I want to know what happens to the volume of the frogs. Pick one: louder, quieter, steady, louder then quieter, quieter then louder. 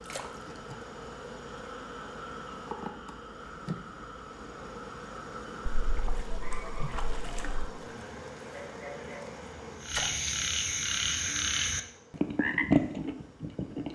louder.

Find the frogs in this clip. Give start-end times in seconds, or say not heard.
0.0-13.9.